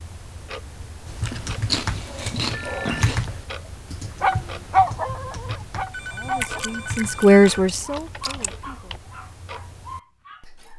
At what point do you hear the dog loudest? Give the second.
5 s.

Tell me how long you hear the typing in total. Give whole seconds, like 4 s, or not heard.
8 s.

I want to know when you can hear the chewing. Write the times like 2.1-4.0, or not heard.
1.2-3.2, 6.3-8.5.